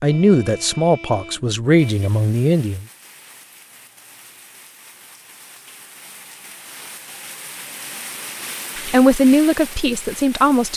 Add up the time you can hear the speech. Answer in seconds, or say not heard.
5 s.